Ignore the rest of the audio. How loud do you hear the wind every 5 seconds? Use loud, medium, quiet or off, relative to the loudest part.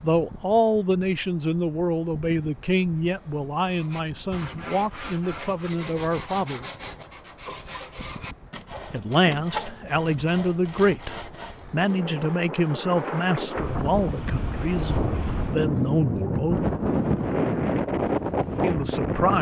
quiet, quiet, medium, loud.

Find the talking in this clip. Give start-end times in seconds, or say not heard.
0.0-6.7, 8.9-16.6, 18.6-19.3.